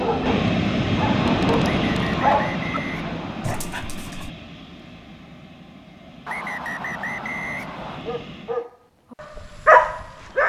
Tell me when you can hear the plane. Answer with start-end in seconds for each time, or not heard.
0.0-8.6.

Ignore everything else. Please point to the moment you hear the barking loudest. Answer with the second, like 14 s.
10 s.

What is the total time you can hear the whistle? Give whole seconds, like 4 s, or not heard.
4 s.